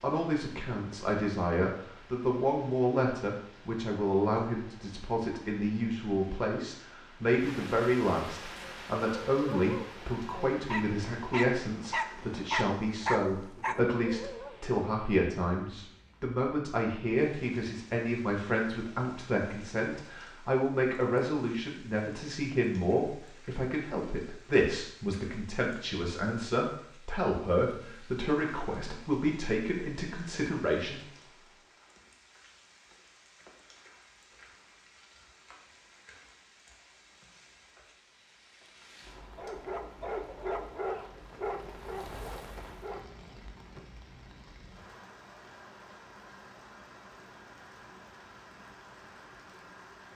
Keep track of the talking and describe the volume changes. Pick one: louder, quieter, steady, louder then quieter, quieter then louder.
steady.